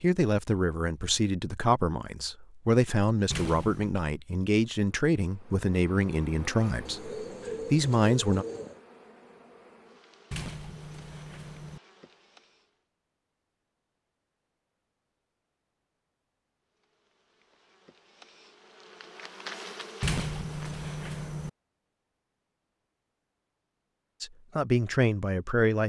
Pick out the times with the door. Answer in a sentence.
The door can be heard from 3.3 to 4.0 s, from 10.3 to 11.8 s and from 20.0 to 21.5 s.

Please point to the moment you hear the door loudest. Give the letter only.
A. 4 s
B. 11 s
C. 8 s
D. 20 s
D.